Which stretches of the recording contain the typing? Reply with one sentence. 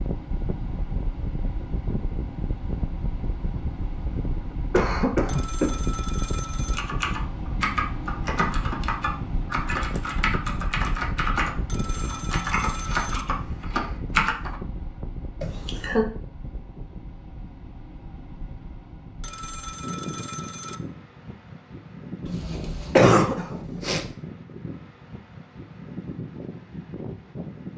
You can hear the typing from 6.8 to 14.6 s.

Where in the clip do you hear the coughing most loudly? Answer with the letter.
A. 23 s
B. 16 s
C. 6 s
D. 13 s
A.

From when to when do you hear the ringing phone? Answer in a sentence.
The ringing phone can be heard from 5.2 to 6.8 s, from 11.7 to 13.2 s and from 19.2 to 20.8 s.